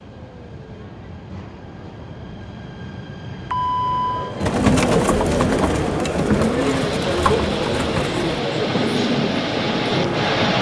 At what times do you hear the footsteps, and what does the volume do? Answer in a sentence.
You can't hear the footsteps here.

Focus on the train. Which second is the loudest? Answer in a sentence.
The loudest moment of the train is at 10 seconds.